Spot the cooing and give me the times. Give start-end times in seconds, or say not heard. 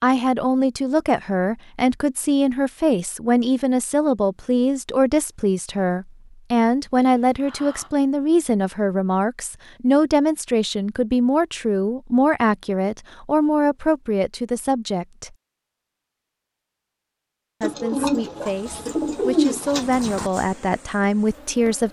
17.6-20.3.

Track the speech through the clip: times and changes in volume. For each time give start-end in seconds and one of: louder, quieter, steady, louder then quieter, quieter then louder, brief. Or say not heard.
0.0-15.3 steady
17.6-21.8 louder.